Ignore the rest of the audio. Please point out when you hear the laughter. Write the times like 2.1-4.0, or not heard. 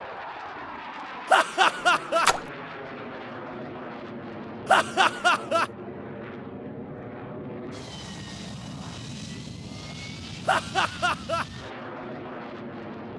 1.3-2.3, 4.7-5.7, 10.4-11.4.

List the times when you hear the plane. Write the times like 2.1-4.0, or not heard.
0.0-13.1.